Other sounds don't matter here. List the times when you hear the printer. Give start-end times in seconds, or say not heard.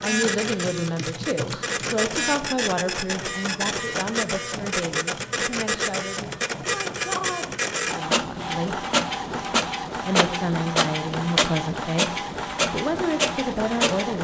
0.0-14.1.